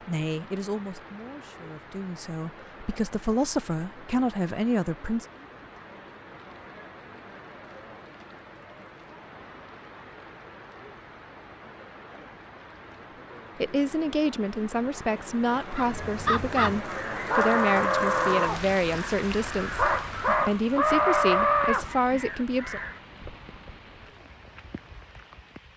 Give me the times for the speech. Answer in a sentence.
You can hear the speech from 0.1 to 5.2 s and from 13.6 to 22.8 s.